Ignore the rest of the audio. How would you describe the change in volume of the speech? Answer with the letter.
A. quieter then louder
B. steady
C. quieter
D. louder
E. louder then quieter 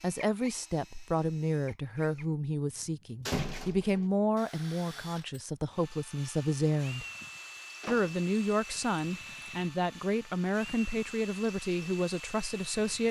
B.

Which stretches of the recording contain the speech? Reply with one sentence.
The speech can be heard from 0.0 to 7.0 s and from 7.8 to 13.0 s.